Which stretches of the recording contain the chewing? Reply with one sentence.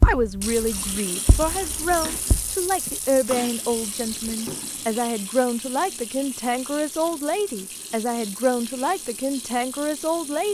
The chewing can't be heard in this clip.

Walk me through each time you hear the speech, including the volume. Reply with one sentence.
The speech can be heard from 0.0 to 10.4 s, at a steady volume.